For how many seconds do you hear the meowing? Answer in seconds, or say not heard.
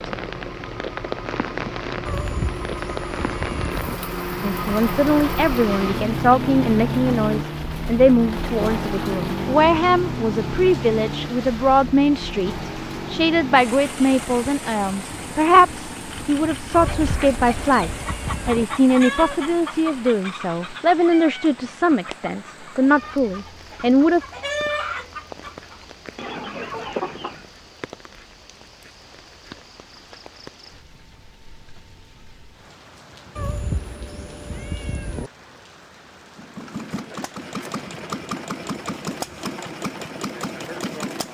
6 s.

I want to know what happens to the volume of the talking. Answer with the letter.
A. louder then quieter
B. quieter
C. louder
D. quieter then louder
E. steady
E.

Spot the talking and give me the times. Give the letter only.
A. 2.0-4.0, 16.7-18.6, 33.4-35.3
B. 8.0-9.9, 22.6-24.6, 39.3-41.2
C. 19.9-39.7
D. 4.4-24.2
D.